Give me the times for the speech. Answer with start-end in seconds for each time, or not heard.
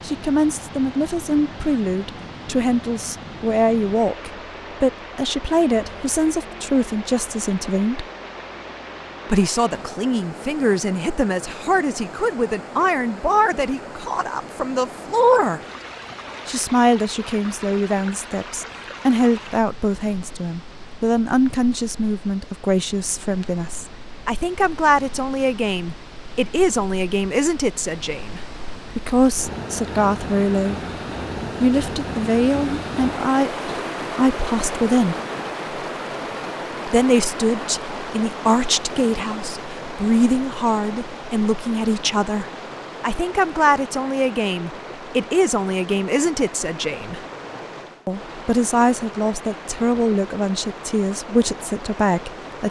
0.0-8.1, 9.2-15.6, 16.4-30.8, 31.6-35.1, 36.9-47.2, 48.0-52.6.